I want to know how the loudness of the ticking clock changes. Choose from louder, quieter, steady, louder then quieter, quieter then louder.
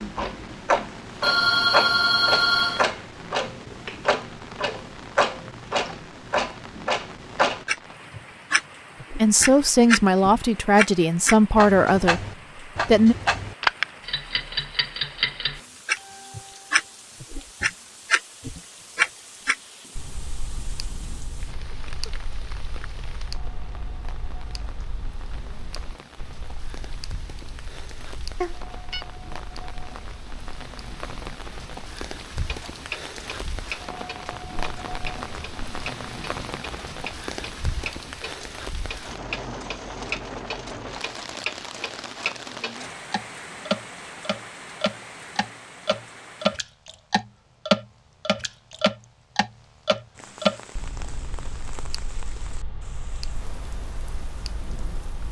quieter then louder.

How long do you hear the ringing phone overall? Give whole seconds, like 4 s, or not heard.
2 s.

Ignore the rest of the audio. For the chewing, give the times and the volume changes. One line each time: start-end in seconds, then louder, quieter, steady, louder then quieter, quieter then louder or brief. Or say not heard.
not heard.